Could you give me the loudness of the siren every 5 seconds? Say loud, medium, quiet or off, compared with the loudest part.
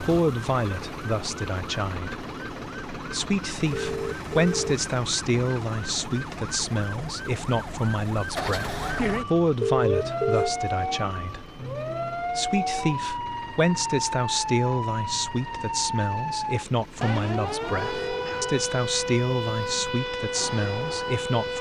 medium, loud, loud, loud, loud.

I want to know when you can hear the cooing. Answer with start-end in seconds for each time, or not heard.
not heard.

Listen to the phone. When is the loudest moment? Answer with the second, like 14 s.
10 s.